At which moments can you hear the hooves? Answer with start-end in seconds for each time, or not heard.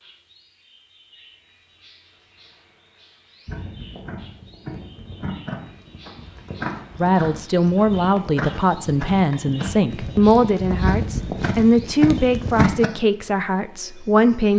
3.5-12.9.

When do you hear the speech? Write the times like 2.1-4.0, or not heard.
7.0-14.5.